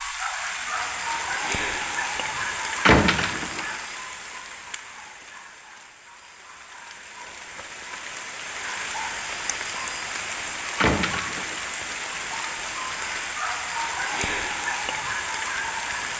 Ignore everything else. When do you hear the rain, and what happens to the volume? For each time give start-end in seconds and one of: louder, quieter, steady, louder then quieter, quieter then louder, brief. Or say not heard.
0.0-16.1 quieter then louder.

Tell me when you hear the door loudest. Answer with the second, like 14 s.
3 s.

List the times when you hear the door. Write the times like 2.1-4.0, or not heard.
2.9-3.6, 10.8-11.6.